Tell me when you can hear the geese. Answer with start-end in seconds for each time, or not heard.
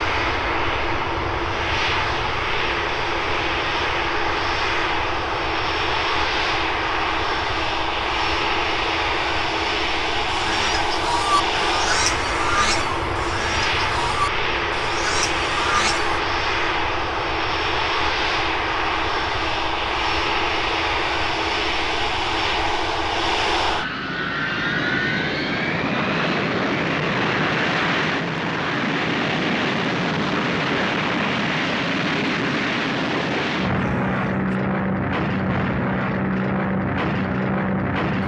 10.2-16.2.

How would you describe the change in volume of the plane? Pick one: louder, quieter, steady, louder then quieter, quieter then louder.
steady.